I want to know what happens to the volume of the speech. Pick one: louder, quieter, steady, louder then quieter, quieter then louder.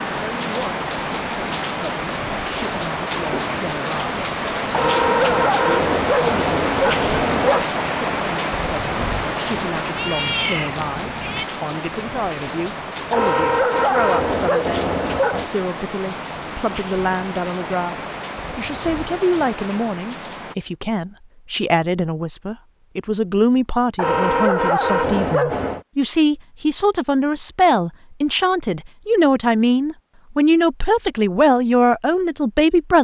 louder.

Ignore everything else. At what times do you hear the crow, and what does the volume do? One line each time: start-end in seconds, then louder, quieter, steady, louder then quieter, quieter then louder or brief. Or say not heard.
not heard.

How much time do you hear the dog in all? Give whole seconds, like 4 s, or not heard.
7 s.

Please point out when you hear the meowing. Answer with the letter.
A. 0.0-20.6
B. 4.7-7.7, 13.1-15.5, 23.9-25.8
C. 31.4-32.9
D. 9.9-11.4
D.